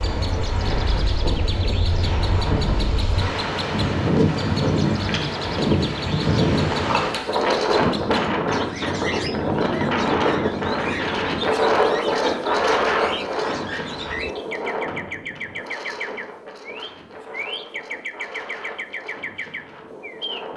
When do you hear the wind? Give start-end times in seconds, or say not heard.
0.0-20.5.